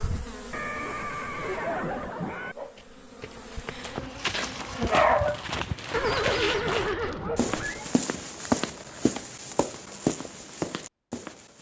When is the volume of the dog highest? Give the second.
5 s.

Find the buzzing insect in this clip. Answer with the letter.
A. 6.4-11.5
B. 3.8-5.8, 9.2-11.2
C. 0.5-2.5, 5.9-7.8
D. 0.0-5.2
D.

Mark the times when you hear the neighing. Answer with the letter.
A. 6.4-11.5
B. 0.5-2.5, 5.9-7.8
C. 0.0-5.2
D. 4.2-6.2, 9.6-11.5
B.